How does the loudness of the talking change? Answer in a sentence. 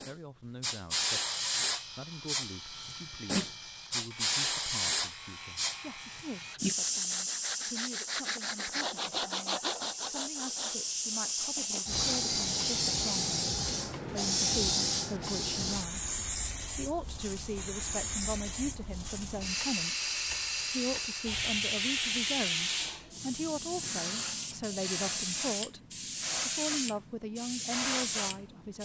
The loudness of the talking goes up.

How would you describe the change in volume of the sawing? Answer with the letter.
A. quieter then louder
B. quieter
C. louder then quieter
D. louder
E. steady
C.